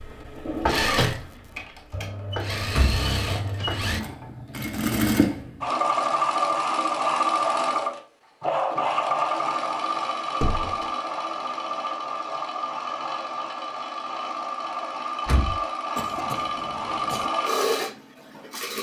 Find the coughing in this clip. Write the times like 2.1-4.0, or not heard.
15.9-17.3.